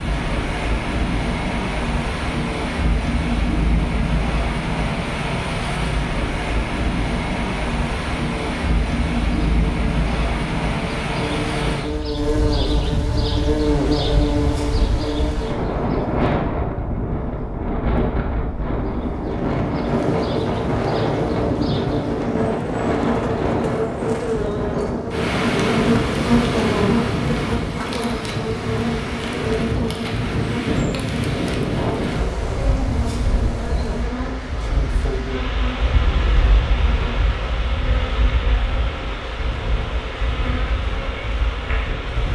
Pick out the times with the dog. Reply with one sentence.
The dog can't be heard in this clip.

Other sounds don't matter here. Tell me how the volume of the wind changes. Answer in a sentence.
The volume of the wind goes down.